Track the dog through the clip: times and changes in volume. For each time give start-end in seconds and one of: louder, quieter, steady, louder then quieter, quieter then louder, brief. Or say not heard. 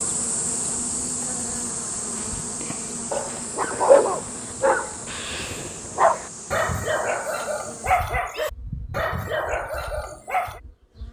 3.1-10.6 quieter.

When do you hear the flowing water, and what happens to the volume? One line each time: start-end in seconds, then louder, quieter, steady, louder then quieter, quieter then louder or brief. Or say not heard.
not heard.